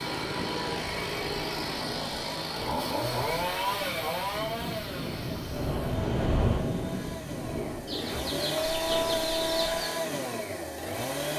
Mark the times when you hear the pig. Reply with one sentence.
You can't hear the pig here.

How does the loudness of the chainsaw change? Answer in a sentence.
The loudness of the chainsaw goes down, then up.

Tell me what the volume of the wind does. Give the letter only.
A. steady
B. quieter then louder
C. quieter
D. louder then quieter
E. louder
D.